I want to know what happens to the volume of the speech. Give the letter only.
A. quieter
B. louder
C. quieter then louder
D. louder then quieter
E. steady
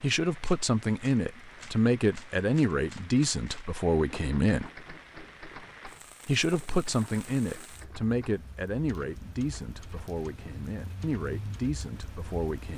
A.